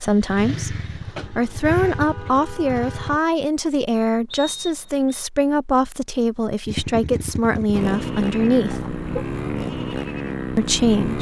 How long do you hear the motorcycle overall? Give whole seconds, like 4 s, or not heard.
8 s.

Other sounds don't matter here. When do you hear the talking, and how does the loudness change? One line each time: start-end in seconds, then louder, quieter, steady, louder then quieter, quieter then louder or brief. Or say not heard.
0.0-8.9 steady
10.6-11.1 brief.